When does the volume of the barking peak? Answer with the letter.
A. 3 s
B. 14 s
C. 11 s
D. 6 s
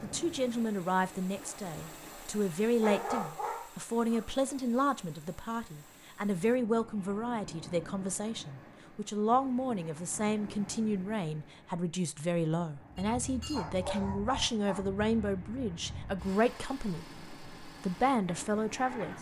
A.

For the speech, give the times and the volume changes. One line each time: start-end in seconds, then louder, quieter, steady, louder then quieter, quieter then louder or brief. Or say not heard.
0.0-19.1 steady.